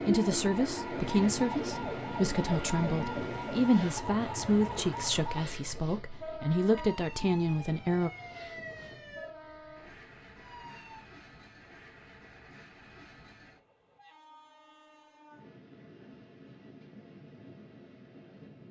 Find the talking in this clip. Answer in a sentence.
You can hear the talking from 0.1 to 8.1 s.